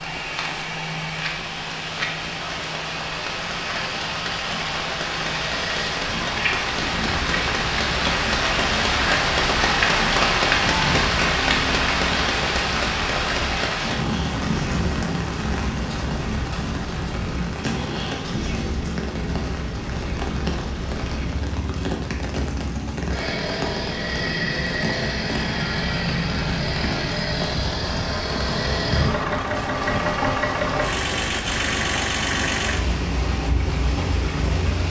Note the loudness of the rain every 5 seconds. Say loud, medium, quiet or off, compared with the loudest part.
medium, loud, loud, medium, medium, medium, medium.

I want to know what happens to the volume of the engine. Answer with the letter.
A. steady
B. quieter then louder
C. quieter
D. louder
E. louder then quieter
D.